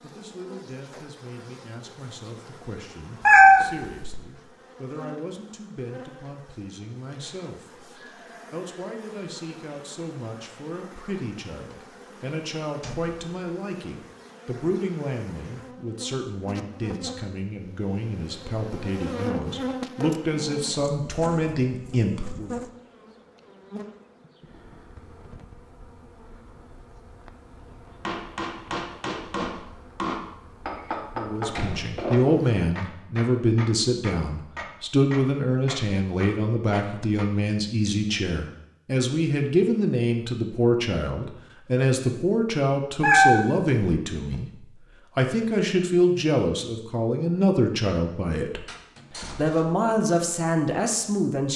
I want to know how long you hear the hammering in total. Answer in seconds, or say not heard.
9 s.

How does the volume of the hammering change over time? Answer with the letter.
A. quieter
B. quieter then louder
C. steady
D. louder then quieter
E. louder
A.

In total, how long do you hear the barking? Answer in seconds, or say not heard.
not heard.